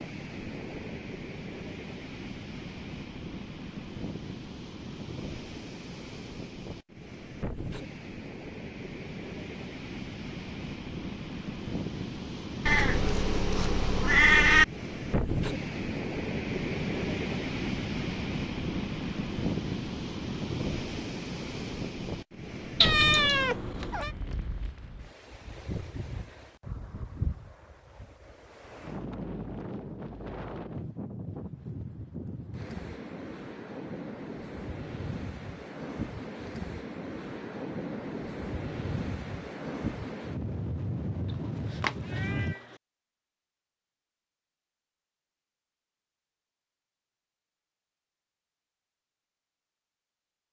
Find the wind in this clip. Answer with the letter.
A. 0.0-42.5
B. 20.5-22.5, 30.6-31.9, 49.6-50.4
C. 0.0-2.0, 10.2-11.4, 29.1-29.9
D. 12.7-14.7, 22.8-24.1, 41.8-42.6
A.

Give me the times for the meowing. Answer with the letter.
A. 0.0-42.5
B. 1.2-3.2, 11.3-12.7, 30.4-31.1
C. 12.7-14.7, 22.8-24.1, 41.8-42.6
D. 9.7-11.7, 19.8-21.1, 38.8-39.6
C.